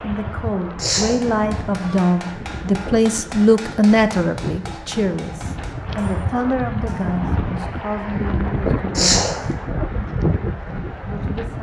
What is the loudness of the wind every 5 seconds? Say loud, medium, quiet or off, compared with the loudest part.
medium, loud, loud.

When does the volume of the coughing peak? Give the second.
9 s.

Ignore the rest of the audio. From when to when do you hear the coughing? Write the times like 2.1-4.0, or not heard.
0.8-1.2, 8.9-9.3.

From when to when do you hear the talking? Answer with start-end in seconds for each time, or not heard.
0.0-9.3, 11.1-11.5.